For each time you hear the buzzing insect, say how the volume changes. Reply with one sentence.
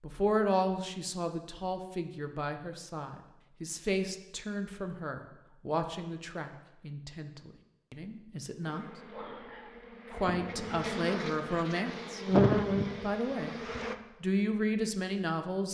The buzzing insect can be heard from 8.6 to 13.9 s, getting louder then quieter.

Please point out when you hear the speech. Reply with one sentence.
The speech can be heard from 0.0 to 9.0 s, from 10.1 to 12.2 s and from 13.0 to 15.6 s.